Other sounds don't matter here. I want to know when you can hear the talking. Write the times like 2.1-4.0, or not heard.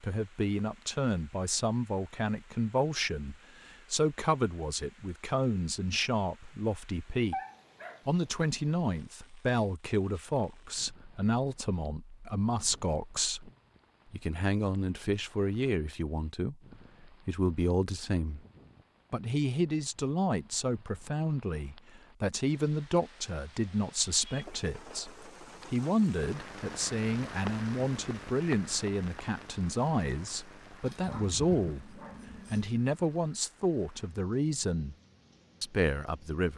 0.0-7.3, 8.1-13.5, 14.1-18.4, 19.1-35.0, 35.6-36.5.